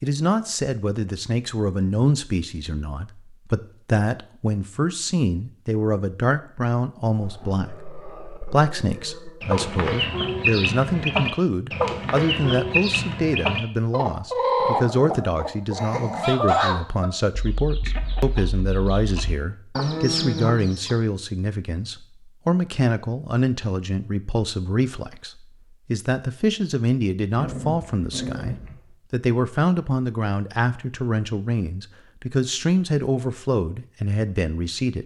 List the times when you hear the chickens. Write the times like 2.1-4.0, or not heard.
9.4-20.9.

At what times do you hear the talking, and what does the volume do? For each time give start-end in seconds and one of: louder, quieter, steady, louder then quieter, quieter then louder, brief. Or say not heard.
0.0-35.0 steady.